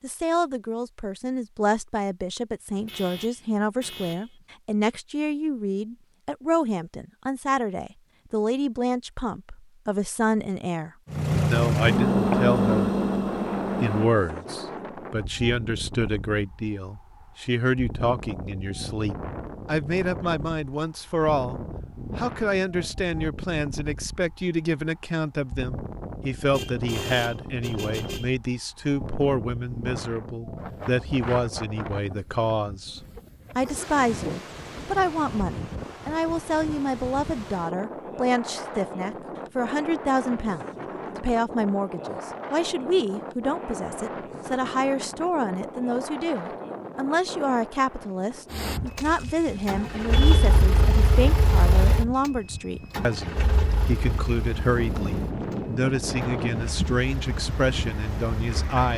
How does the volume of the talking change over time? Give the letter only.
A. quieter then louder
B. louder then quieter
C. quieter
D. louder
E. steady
E.